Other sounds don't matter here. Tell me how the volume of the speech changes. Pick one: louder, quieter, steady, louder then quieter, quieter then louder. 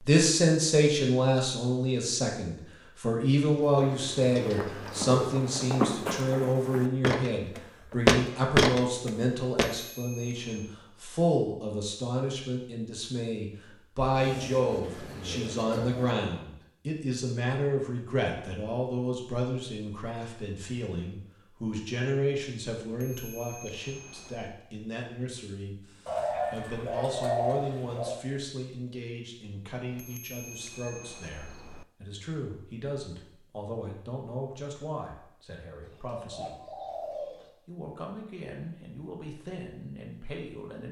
quieter.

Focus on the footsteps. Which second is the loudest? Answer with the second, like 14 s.
8 s.